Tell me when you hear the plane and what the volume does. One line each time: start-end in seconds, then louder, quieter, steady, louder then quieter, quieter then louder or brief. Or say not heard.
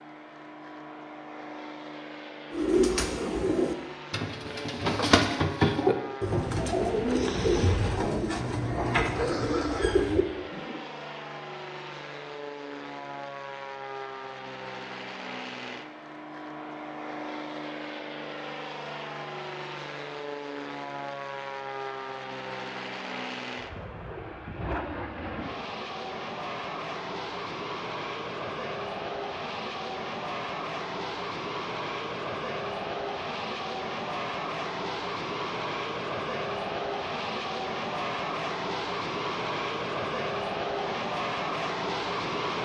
0.0-42.6 louder.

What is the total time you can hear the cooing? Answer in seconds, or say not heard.
8 s.